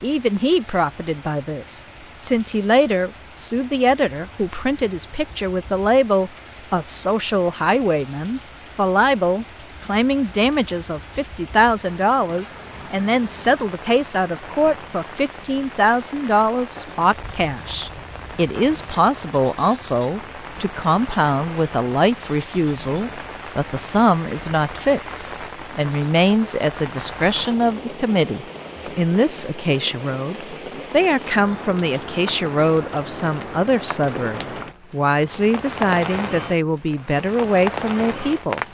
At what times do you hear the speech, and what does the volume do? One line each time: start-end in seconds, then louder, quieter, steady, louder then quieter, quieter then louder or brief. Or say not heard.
0.0-38.6 steady.